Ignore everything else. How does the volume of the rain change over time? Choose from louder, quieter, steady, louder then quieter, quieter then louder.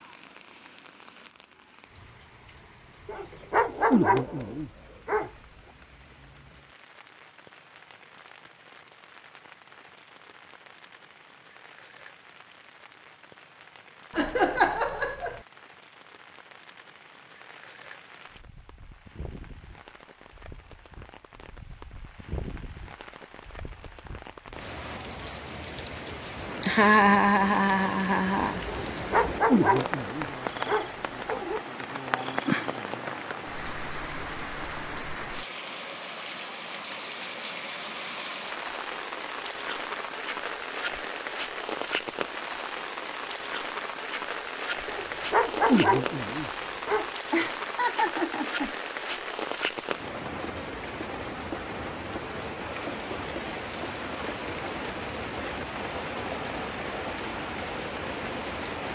louder.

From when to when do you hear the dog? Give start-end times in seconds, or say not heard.
3.0-5.3, 28.6-31.6, 44.9-47.0.